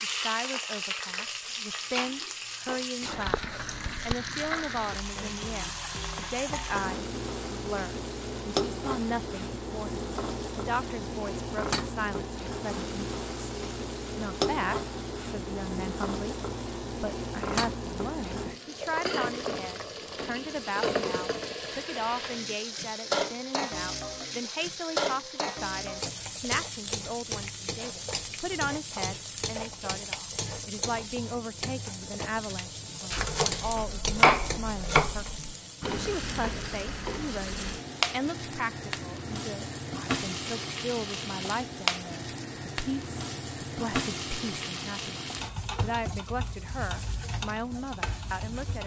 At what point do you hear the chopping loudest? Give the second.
34 s.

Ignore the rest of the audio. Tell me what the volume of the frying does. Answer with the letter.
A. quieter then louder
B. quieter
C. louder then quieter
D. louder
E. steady
E.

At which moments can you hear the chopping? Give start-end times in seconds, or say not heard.
33.1-35.5.